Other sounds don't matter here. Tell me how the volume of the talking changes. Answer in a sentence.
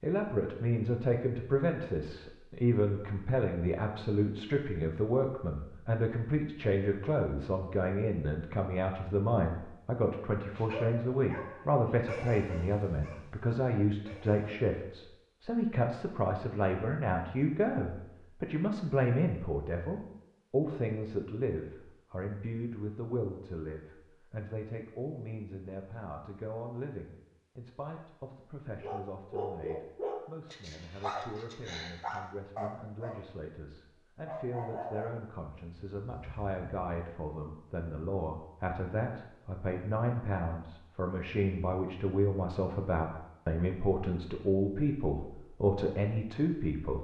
The loudness of the talking goes down, then up.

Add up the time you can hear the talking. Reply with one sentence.
You can hear the talking for 47 seconds altogether.